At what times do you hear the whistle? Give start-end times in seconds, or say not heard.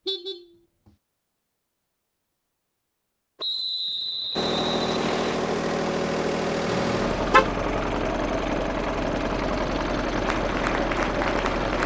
3.4-5.4.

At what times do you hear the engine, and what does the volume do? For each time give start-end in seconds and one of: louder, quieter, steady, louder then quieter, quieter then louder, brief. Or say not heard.
4.3-11.8 steady.